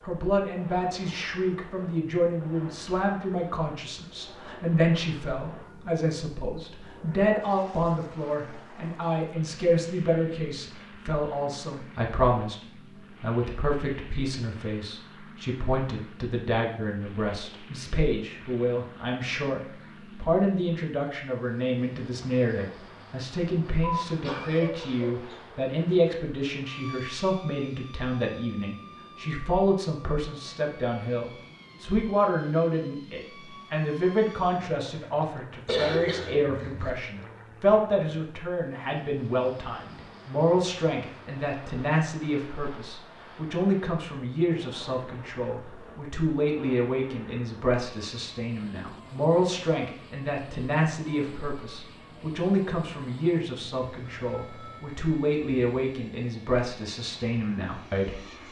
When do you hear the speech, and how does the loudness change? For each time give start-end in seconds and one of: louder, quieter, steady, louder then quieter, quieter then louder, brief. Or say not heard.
0.0-58.4 steady.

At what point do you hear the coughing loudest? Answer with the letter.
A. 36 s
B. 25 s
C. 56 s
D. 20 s
A.